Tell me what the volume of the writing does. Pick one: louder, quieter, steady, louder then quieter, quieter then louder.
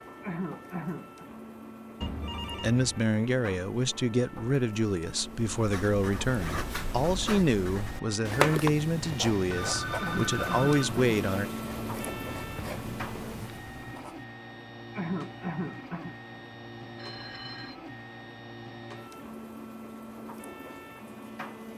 louder then quieter.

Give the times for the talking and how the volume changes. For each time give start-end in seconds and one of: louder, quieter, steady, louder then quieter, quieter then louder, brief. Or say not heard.
2.6-11.4 steady.